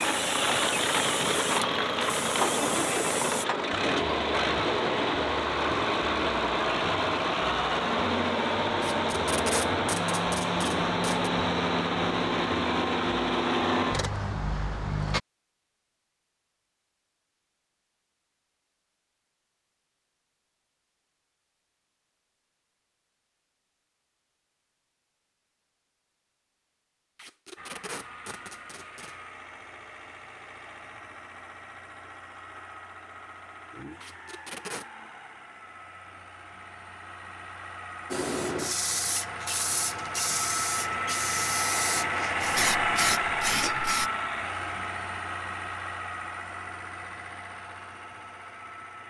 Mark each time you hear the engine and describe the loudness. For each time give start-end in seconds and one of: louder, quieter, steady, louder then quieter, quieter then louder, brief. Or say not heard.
0.0-15.2 steady
27.6-49.0 louder then quieter.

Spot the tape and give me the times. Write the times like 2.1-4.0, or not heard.
8.8-11.3, 27.1-29.1, 34.0-34.9.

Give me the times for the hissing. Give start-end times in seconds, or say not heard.
0.0-3.5, 38.1-44.1.